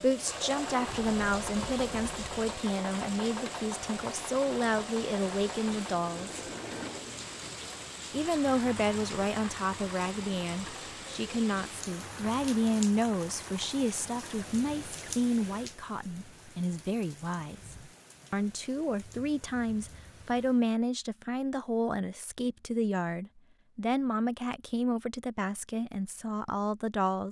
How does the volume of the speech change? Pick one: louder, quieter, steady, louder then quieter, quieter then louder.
steady.